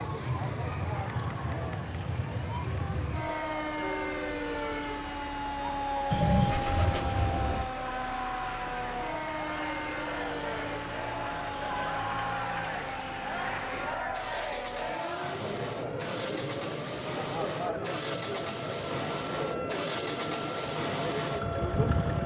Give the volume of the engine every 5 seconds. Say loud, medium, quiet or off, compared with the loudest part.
quiet, medium, medium, loud, loud.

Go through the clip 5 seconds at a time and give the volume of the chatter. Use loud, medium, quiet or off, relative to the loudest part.
medium, medium, loud, loud, loud.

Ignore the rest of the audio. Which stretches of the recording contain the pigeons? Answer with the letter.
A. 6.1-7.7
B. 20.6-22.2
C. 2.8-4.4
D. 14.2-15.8
A.